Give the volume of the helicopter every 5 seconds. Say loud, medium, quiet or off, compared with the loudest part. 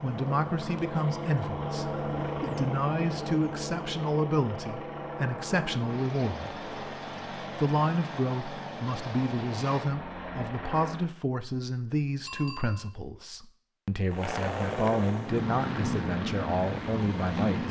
loud, medium, loud, loud.